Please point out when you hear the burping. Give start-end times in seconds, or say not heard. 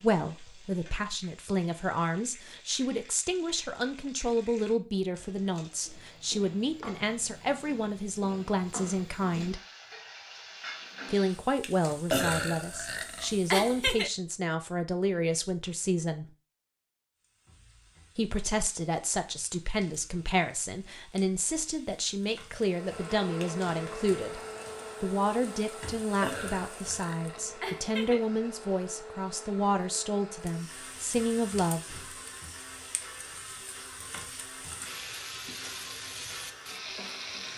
12.1-14.1, 26.2-28.2.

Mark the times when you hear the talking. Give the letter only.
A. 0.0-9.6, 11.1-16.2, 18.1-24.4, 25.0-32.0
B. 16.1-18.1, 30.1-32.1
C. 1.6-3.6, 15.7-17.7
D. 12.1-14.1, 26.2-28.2
A.